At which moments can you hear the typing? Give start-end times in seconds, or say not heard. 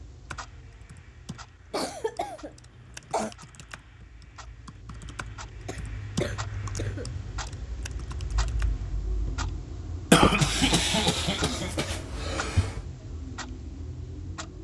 0.3-8.9.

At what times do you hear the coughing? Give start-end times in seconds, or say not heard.
1.7-3.4, 5.7-7.1, 10.1-12.7.